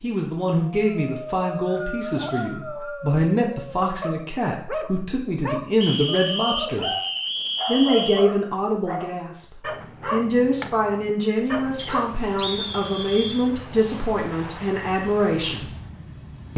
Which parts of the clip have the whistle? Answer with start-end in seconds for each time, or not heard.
1.2-3.1, 5.8-8.3, 11.8-13.5.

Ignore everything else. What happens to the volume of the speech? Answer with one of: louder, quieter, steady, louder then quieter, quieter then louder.
steady.